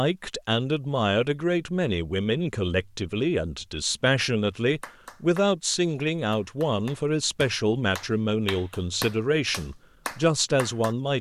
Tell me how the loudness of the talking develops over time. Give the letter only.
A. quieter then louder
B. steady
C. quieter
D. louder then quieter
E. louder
B.